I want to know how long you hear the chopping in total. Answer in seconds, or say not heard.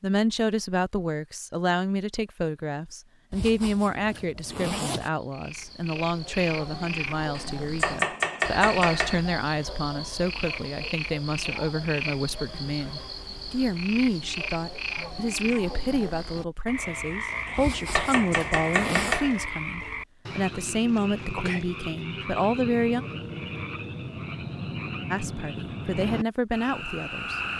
4 s.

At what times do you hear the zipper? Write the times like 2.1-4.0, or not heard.
3.3-5.1, 17.6-19.2.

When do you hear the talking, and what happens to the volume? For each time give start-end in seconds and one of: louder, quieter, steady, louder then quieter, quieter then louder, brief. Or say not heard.
0.0-23.1 steady
25.1-27.4 brief.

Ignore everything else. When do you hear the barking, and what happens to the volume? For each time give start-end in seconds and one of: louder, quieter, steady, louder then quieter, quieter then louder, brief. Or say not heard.
not heard.